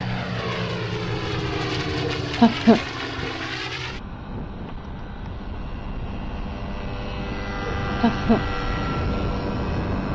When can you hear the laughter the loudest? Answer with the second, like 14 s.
3 s.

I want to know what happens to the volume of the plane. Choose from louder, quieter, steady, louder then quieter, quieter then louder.
quieter then louder.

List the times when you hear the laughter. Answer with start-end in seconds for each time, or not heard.
2.0-3.4, 7.8-8.4.